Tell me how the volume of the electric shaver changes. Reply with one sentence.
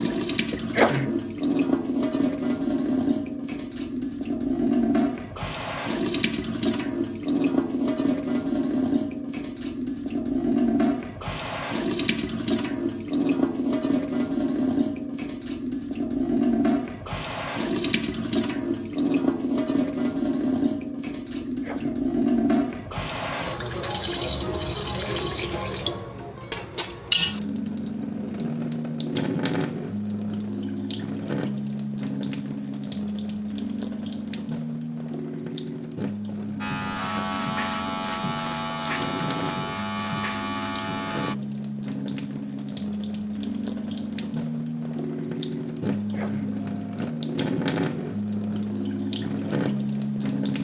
The volume of the electric shaver stays about the same.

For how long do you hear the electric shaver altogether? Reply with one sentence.
You can hear the electric shaver for 5 seconds altogether.